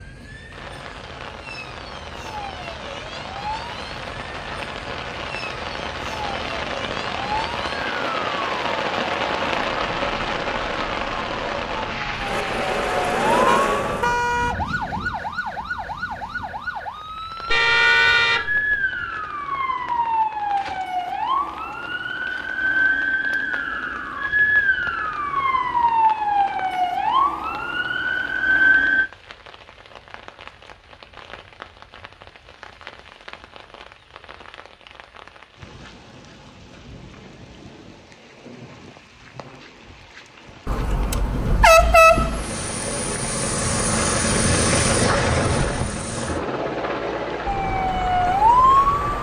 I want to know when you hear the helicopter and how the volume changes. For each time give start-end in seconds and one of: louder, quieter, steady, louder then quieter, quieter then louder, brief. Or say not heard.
12.2-14.2 brief
42.0-49.1 louder then quieter.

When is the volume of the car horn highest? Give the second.
42 s.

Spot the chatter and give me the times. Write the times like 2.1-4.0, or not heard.
not heard.